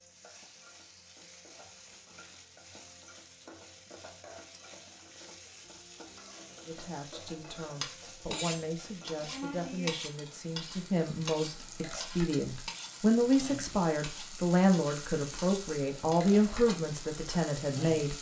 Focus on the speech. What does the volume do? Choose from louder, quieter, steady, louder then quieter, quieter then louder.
louder.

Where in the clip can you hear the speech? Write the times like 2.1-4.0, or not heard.
6.7-18.1.